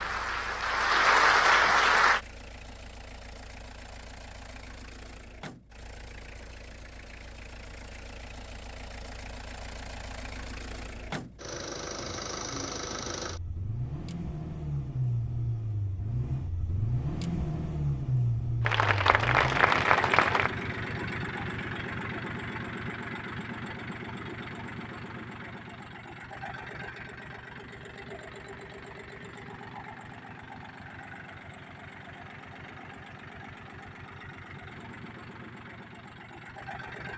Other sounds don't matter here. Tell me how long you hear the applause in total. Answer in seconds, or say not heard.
4 s.